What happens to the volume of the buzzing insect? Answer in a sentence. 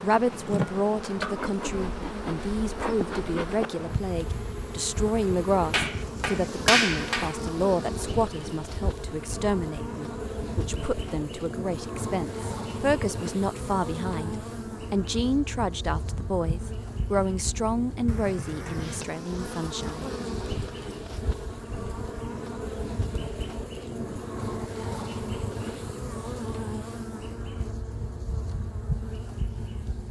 The loudness of the buzzing insect stays about the same.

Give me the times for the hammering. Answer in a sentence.
The hammering can be heard from 5.7 to 7.3 s.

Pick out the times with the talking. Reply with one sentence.
You can hear the talking from 0.0 to 20.1 s.